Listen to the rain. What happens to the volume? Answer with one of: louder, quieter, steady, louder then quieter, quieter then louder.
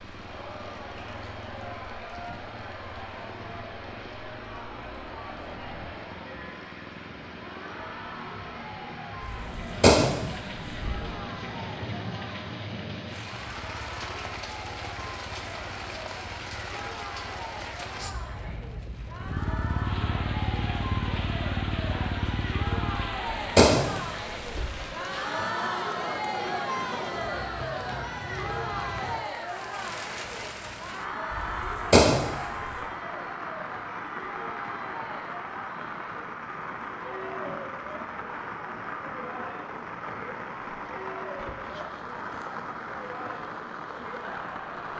louder.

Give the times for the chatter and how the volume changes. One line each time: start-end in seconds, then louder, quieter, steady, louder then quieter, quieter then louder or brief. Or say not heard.
0.1-44.9 louder then quieter.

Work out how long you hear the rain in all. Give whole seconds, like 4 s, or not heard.
45 s.